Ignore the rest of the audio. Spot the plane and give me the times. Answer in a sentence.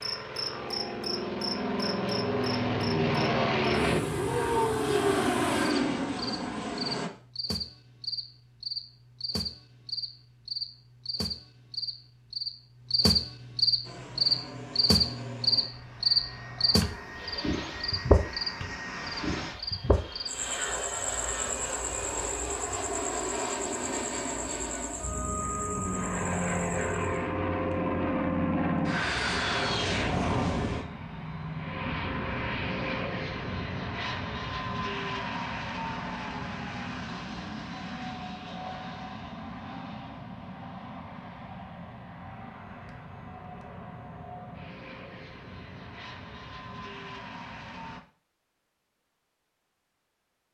The plane can be heard from 0.0 to 7.1 s and from 13.8 to 48.0 s.